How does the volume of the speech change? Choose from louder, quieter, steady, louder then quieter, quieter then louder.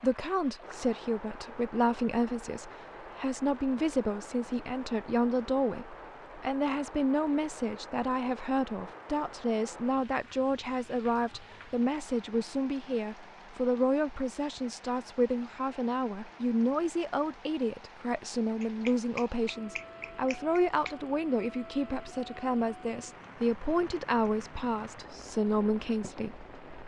steady.